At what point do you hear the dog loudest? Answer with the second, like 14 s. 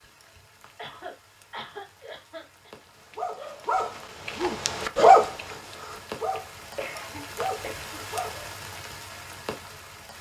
5 s.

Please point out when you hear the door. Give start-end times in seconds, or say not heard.
not heard.